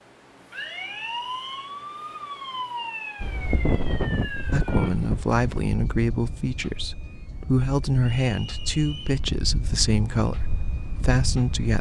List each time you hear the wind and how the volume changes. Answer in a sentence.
The wind can be heard from 3.2 to 11.7 s, getting quieter then louder.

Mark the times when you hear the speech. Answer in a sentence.
The speech can be heard from 4.5 to 11.7 s.